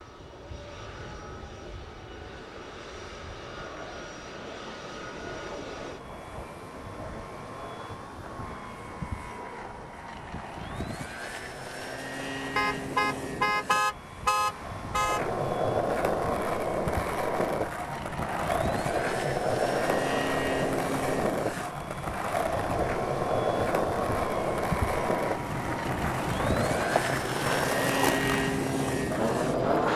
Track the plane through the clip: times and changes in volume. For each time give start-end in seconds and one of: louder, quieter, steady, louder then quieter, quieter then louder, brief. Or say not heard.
0.0-29.9 louder.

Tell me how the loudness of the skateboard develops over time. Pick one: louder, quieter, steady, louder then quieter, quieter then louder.
louder.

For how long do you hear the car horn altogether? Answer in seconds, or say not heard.
3 s.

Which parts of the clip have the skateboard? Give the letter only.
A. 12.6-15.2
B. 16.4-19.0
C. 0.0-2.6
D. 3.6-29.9
D.